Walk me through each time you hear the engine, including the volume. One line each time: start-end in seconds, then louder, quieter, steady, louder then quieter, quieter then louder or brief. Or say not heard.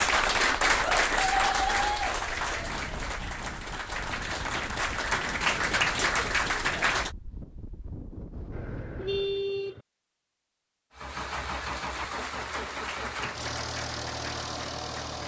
10.9-15.2 steady.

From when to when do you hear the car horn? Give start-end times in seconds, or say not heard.
8.5-9.8.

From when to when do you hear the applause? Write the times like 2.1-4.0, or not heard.
0.0-7.1, 11.2-15.2.